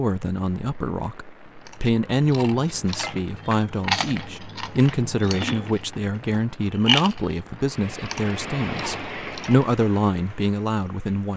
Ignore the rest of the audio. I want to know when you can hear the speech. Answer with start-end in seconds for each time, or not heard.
0.0-11.3.